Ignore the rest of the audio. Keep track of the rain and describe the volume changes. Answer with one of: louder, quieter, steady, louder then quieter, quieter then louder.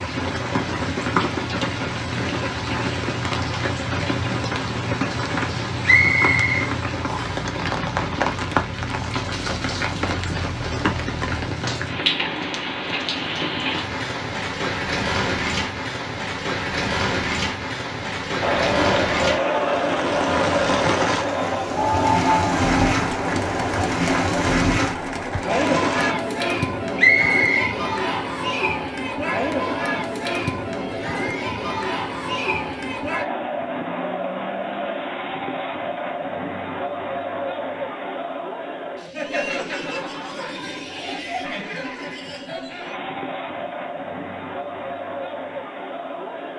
steady.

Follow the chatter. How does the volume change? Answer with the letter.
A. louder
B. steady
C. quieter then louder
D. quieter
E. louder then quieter
D.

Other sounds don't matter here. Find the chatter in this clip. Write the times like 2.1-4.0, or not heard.
18.4-46.5.